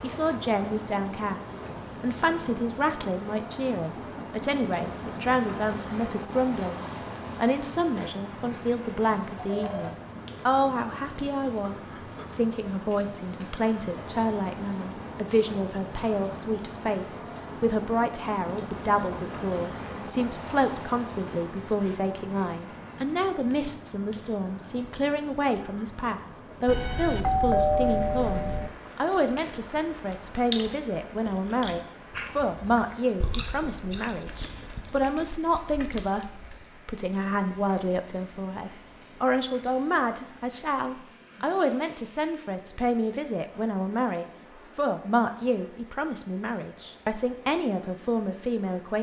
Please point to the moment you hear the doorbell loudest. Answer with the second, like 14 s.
28 s.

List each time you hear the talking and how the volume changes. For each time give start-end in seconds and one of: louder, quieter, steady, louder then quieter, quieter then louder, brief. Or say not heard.
0.0-48.9 steady.